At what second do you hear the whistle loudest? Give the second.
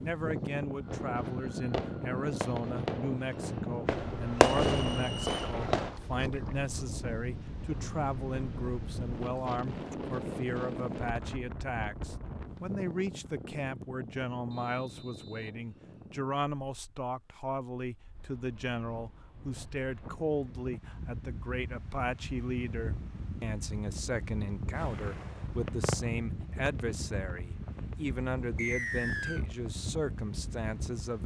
29 s.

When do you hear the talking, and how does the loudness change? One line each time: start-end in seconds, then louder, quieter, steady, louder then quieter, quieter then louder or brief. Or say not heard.
0.0-31.2 steady.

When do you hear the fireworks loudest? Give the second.
5 s.